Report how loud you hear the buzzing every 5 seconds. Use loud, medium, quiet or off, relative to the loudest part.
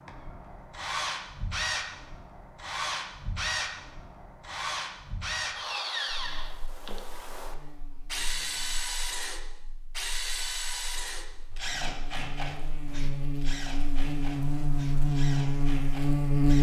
off, quiet, medium, loud.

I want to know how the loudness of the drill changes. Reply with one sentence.
The volume of the drill goes down.